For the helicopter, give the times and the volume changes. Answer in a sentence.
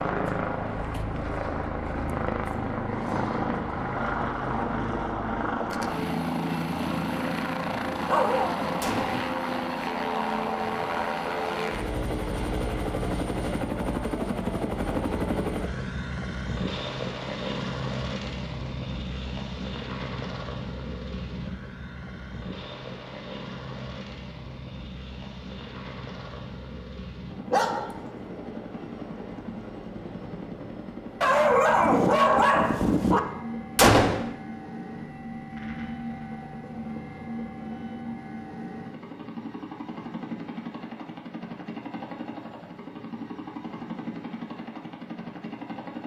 You can hear the helicopter from 0.0 to 46.0 s, getting quieter.